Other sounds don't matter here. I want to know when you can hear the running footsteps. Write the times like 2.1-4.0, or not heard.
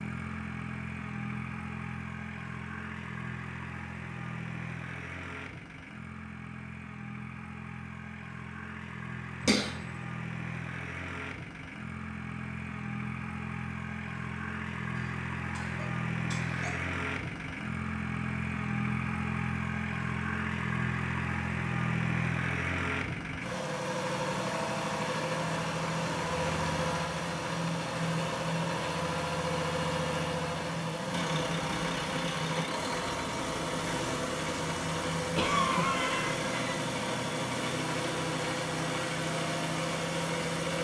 not heard.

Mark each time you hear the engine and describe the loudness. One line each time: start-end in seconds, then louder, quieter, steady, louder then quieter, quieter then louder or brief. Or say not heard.
0.0-40.7 louder.